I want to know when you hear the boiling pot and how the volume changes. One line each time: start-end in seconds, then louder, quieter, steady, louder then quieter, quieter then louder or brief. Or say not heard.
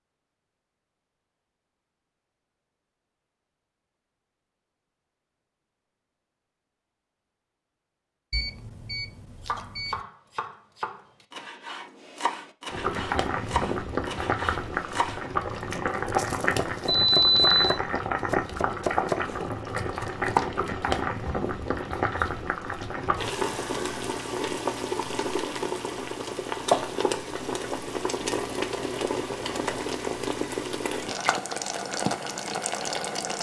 12.7-33.3 steady.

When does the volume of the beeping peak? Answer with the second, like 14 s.
17 s.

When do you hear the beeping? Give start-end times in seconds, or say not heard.
8.3-10.0, 16.9-17.8.